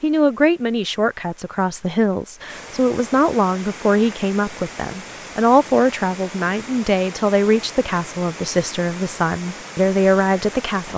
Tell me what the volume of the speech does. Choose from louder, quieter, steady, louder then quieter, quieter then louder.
steady.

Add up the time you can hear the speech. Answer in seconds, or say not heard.
11 s.